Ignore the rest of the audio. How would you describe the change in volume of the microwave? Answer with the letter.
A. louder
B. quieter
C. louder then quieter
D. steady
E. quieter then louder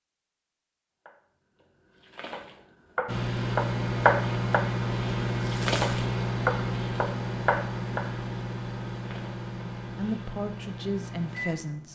B.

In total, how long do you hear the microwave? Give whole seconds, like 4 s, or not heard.
9 s.